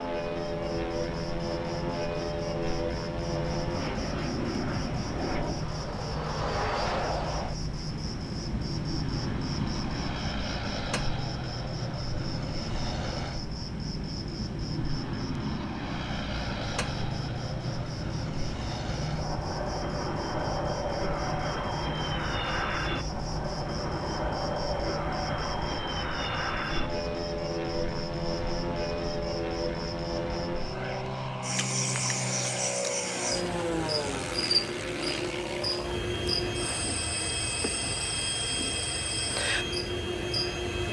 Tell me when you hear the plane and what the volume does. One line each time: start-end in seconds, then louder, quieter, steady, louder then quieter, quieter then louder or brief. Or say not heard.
0.0-40.8 steady.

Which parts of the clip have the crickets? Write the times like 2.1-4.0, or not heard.
0.0-40.8.